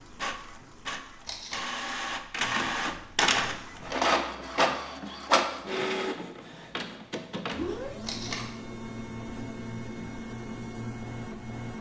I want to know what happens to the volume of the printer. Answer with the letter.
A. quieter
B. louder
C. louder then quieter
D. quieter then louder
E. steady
C.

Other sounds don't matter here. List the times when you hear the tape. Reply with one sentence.
The tape can be heard from 1.2 to 1.6 s and from 8.0 to 8.4 s.